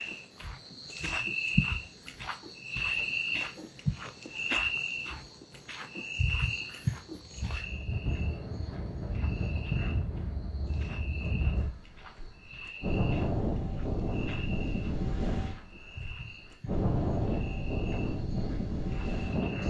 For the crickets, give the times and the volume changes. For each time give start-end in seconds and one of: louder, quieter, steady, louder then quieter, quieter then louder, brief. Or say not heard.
0.0-19.6 quieter.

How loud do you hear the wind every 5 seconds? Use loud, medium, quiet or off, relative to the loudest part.
off, loud, loud, loud.